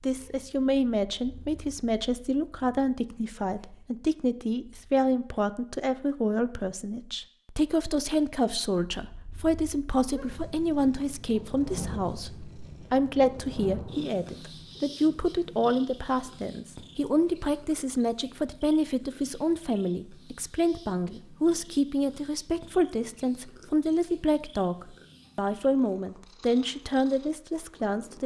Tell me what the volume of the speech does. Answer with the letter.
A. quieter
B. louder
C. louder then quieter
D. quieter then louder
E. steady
E.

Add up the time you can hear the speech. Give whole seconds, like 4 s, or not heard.
28 s.